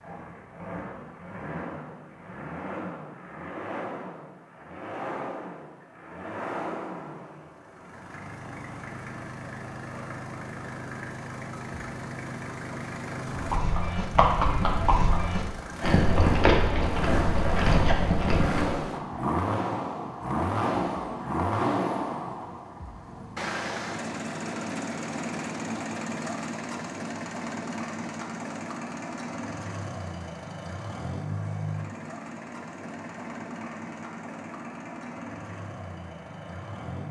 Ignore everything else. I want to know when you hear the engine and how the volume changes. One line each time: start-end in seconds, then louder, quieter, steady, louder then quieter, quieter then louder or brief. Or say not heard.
0.0-37.0 louder then quieter.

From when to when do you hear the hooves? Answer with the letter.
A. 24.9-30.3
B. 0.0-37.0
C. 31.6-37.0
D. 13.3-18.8
D.